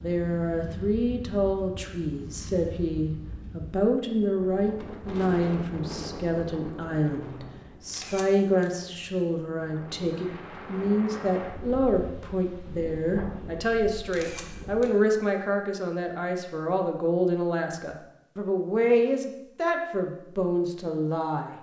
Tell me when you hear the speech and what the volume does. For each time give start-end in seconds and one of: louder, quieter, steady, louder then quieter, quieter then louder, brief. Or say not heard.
0.0-21.5 steady.